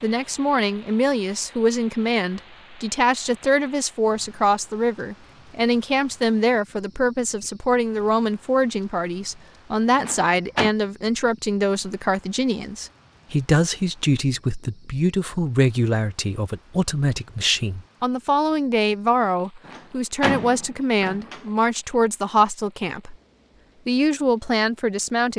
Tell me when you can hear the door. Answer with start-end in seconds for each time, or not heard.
9.9-10.7, 19.6-21.4.